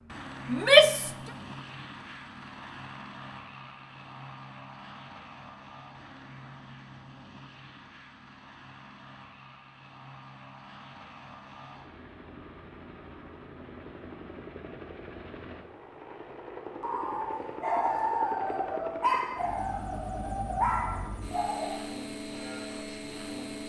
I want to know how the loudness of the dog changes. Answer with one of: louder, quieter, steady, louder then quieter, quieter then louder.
quieter then louder.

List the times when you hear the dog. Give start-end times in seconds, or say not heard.
16.8-21.8.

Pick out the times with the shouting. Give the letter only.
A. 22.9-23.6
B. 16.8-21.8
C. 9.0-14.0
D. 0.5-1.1
D.